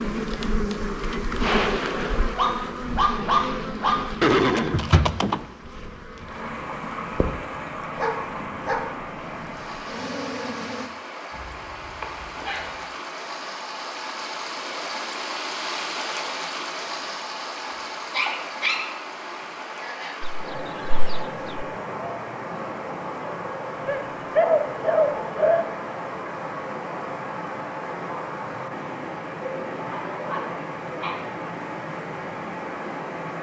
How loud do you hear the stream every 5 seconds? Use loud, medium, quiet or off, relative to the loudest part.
off, loud, loud, loud, loud, loud, loud.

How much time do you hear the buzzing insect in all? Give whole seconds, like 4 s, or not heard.
11 s.